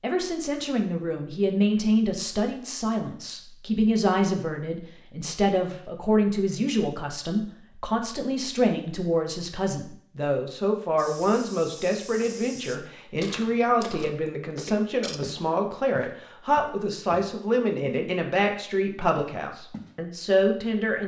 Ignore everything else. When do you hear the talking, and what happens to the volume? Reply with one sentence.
The talking can be heard from 0.0 to 21.0 s, at a steady volume.